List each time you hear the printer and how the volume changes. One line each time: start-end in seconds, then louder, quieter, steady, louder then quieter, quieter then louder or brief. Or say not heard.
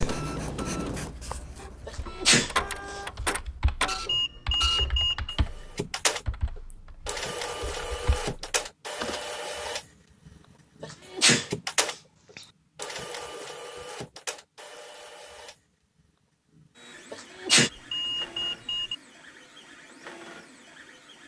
0.0-21.2 quieter.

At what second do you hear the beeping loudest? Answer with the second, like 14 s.
5 s.